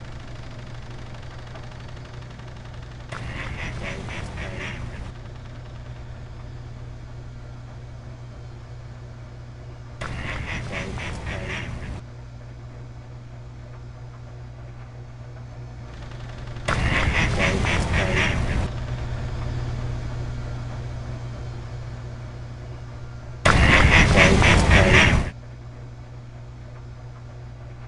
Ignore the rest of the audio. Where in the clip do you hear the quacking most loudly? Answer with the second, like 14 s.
24 s.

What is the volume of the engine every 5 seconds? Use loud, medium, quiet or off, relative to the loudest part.
medium, medium, medium, loud, loud, medium.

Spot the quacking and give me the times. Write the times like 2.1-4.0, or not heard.
3.1-5.2, 10.0-12.0, 16.6-18.7, 23.4-25.3.